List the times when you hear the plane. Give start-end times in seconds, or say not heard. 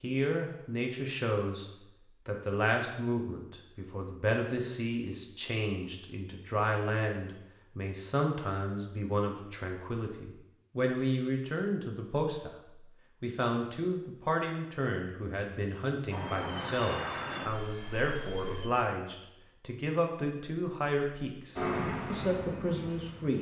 16.1-18.7, 21.6-23.3.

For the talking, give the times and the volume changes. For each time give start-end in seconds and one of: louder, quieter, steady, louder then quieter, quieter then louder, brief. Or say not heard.
0.0-1.6 brief
2.2-23.3 steady.